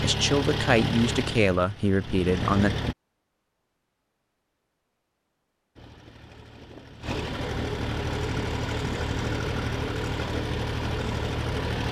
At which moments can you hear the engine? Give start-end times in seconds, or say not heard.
0.0-3.0, 5.8-11.8.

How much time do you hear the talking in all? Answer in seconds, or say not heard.
3 s.